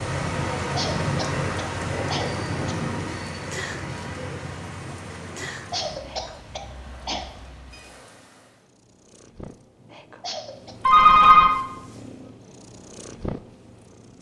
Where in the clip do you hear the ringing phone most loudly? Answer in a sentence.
The volume of the ringing phone peaks at 11 seconds.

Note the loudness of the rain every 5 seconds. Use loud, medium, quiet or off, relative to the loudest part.
loud, quiet, off.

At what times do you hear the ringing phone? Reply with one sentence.
You can hear the ringing phone from 1.2 to 2.2 s, from 6.8 to 7.8 s and from 10.8 to 11.5 s.